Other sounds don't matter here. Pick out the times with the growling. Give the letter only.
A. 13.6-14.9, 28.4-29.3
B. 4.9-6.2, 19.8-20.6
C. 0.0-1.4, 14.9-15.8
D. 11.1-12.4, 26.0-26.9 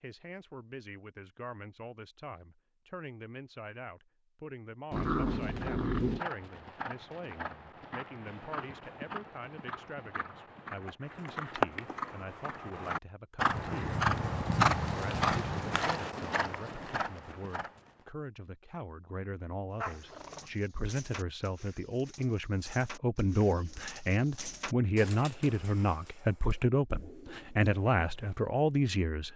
B.